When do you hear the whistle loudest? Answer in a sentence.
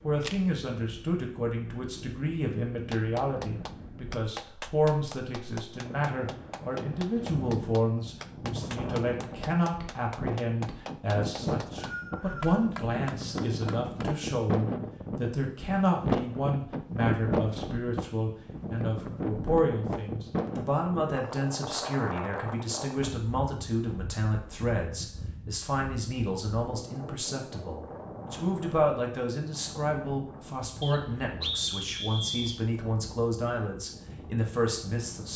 The loudest moment of the whistle is at 32 seconds.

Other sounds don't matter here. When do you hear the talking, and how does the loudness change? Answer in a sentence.
The talking can be heard from 0.0 to 35.3 s, at a steady volume.